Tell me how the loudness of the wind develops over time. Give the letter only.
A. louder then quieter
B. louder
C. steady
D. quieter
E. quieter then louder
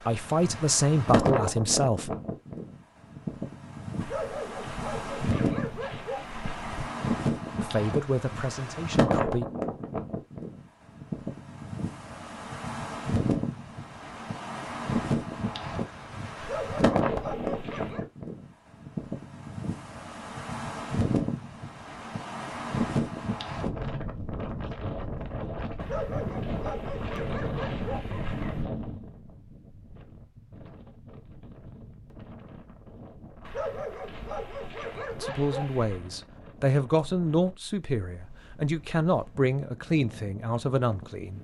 D.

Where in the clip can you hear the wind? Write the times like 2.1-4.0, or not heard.
0.0-41.3.